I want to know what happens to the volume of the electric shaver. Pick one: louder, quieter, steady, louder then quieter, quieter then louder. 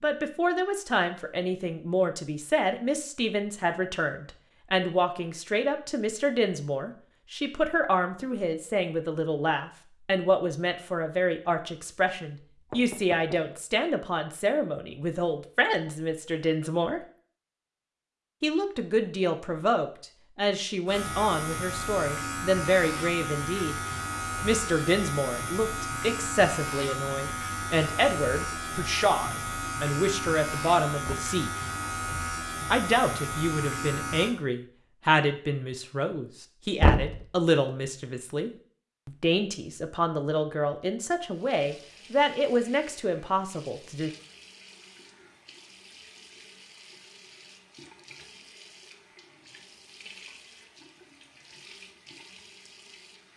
steady.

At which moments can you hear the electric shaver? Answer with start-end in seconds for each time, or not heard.
20.9-34.4.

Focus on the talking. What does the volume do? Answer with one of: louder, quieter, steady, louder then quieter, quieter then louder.
steady.